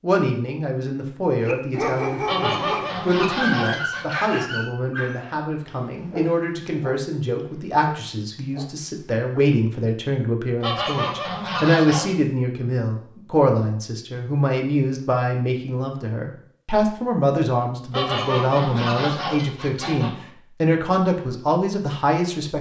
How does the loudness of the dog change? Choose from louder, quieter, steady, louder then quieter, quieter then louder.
quieter.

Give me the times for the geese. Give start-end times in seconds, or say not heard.
2.2-4.2, 10.6-12.2, 17.9-20.1.